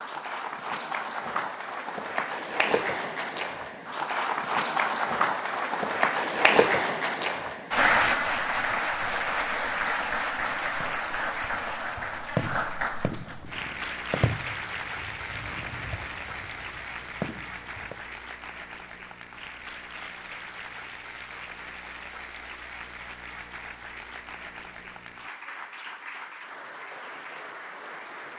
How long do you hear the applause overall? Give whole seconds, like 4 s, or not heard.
28 s.